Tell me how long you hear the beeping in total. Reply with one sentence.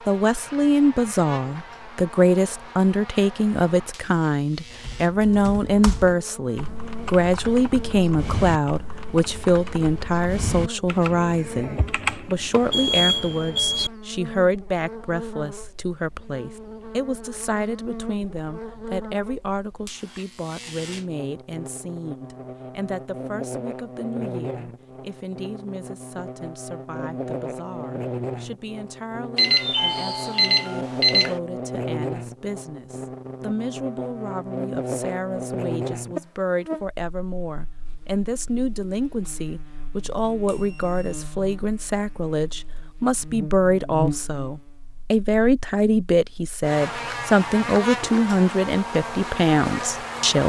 The beeping can be heard for 4 seconds in total.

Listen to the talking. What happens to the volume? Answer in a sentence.
The volume of the talking goes down, then up.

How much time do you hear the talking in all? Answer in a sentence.
You can hear the talking for 50 seconds altogether.